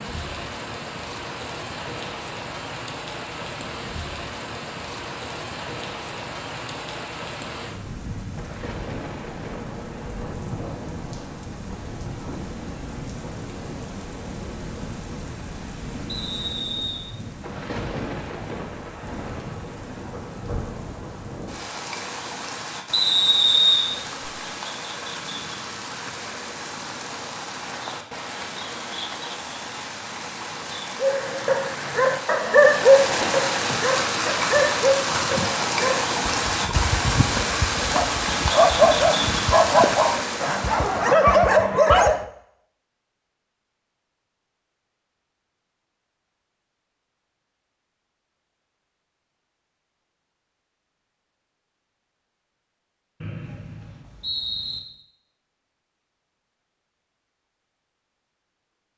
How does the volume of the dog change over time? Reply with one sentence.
The loudness of the dog goes down, then up.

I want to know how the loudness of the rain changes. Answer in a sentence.
The loudness of the rain goes up.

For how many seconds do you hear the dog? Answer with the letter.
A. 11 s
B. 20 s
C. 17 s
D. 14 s
A.